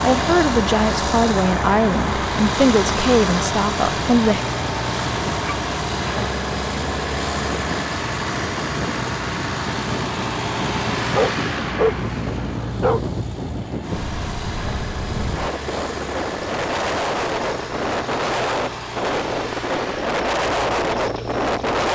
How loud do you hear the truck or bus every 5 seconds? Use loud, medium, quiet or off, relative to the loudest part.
loud, loud, medium, medium, quiet.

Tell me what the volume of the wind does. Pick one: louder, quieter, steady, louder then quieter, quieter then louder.
louder.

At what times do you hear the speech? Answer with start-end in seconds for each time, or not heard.
0.0-4.4.